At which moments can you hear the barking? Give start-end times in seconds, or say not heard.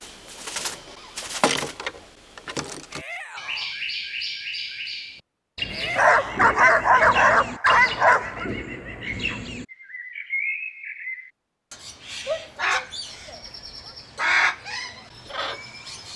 6.0-8.5.